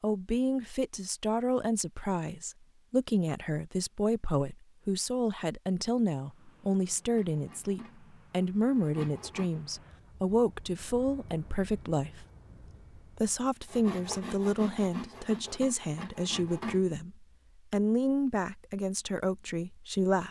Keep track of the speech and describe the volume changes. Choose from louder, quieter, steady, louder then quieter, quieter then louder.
steady.